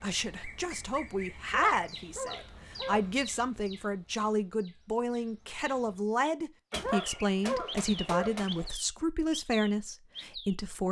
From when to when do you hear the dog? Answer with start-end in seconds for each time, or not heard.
1.5-3.0, 6.8-8.3.